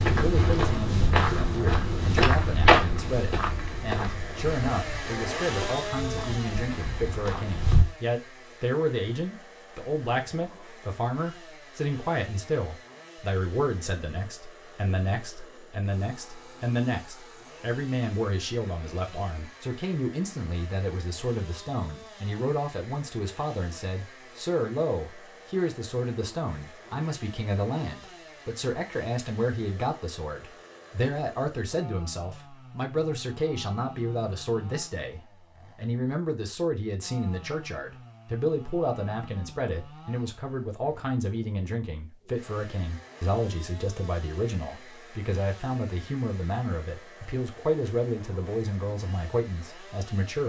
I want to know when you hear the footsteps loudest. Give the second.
3 s.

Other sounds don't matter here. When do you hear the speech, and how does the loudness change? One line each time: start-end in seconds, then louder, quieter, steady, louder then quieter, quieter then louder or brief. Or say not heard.
0.1-50.4 steady.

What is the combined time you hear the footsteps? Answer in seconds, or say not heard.
8 s.